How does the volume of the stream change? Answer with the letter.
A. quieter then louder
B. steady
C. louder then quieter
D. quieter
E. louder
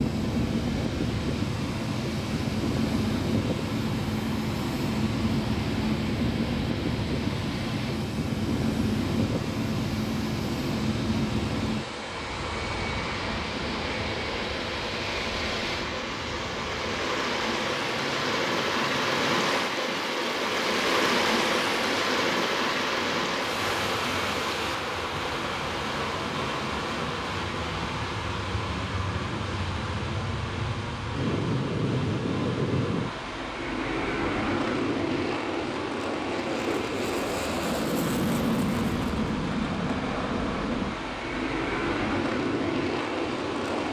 C.